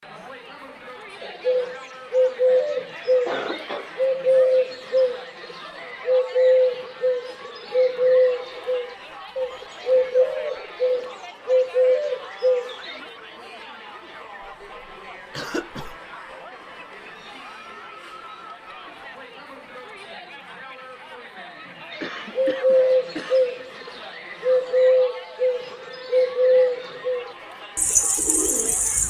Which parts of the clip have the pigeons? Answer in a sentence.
The pigeons can be heard from 1.2 to 13.0 s and from 21.9 to 29.0 s.